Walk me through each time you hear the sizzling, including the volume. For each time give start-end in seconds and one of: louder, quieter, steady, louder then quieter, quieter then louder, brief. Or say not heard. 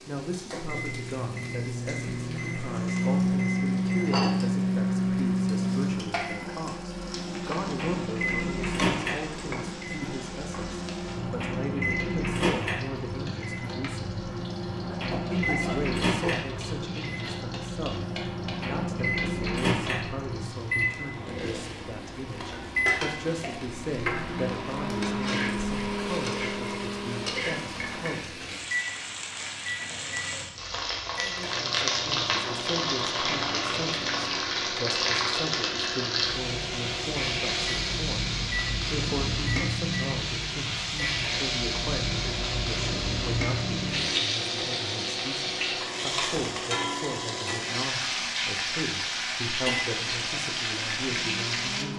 0.0-51.9 louder.